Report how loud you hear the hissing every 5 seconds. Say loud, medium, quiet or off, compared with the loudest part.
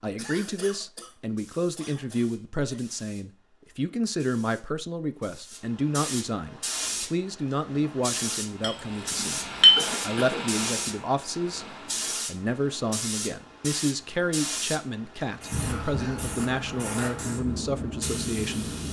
quiet, loud, loud, loud.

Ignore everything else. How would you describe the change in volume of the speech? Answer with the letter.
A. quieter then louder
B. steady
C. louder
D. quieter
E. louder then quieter
B.